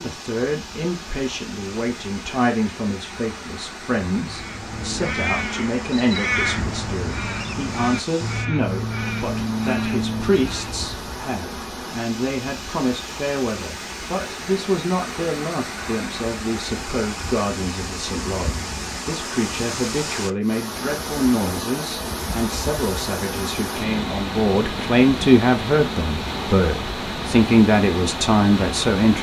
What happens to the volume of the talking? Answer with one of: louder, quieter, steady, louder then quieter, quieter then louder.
louder.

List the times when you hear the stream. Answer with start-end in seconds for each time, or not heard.
0.0-29.1.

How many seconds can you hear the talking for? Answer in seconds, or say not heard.
29 s.